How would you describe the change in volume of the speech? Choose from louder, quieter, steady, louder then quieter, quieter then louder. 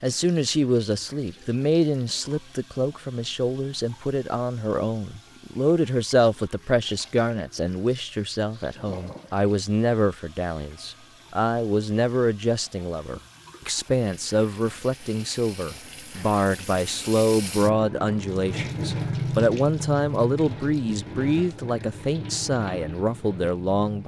steady.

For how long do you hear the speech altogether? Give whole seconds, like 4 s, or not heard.
24 s.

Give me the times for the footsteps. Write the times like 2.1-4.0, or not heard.
not heard.